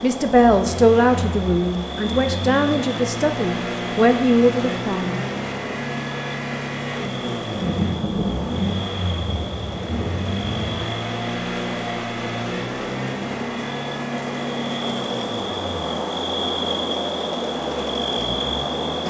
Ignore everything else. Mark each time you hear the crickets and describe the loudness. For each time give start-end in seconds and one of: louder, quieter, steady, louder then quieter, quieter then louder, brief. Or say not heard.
0.0-19.0 louder.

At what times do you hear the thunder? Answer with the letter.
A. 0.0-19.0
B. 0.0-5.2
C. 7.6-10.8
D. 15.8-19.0
C.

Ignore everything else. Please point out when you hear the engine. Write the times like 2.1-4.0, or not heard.
0.0-19.0.